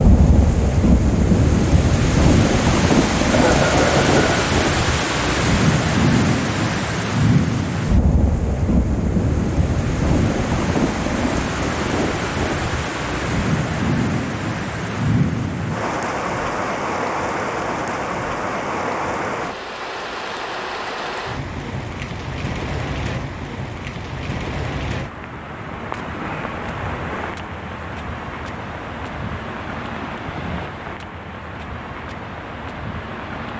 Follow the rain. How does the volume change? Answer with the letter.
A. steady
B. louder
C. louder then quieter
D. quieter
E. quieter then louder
D.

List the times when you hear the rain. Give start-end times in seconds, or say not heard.
0.0-33.5.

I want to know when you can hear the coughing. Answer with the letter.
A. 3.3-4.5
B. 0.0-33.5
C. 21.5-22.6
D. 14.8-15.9
A.